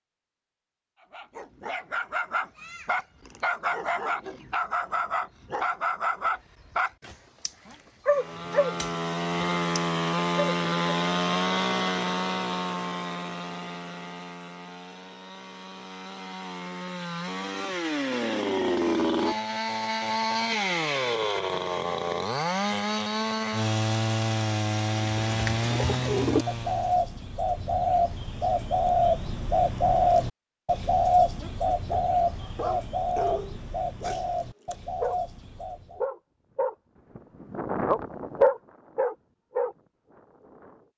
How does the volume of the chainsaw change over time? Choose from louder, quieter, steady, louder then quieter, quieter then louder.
quieter then louder.